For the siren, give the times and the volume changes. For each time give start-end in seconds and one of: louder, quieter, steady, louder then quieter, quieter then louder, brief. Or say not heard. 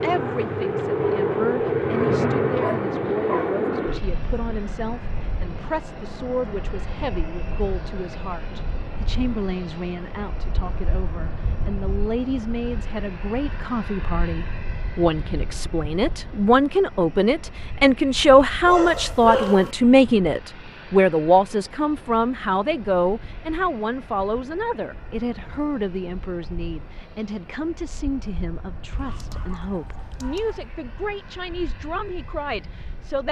not heard.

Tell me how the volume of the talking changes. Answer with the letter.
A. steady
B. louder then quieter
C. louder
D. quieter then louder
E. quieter
B.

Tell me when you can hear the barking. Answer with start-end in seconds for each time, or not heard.
1.9-3.6, 18.6-19.8, 28.9-30.8.